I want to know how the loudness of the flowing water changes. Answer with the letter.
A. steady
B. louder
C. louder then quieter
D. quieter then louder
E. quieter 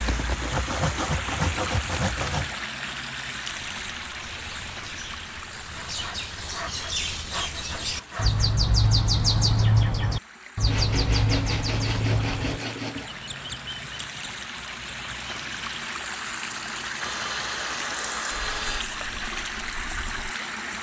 D.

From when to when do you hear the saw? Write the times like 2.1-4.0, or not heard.
0.0-2.5, 5.8-8.5, 10.7-13.1, 17.0-18.9.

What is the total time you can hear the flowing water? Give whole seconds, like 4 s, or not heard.
21 s.